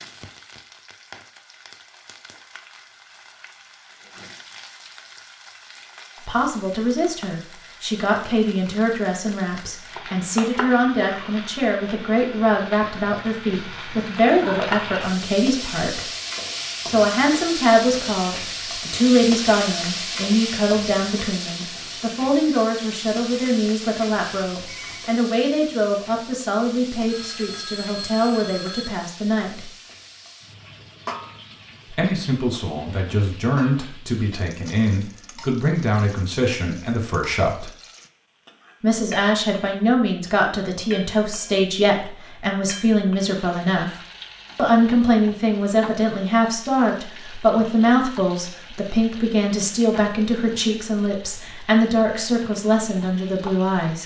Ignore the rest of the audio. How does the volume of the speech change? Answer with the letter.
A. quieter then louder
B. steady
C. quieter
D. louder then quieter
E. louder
B.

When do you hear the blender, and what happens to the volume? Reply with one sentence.
You can't hear the blender here.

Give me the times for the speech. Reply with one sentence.
The speech can be heard from 6.2 to 16.0 s, from 16.9 to 29.7 s, from 31.9 to 37.7 s and from 38.8 to 54.0 s.